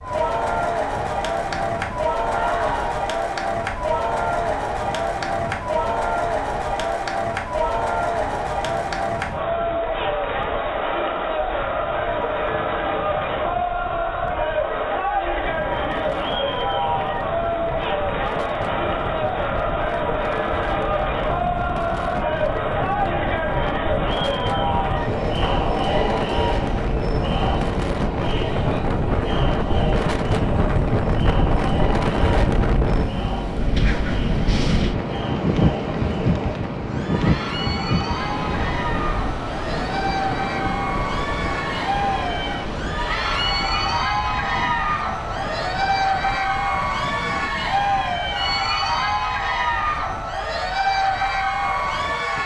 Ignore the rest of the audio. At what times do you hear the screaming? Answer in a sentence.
The screaming can be heard from 2.3 to 3.0 s.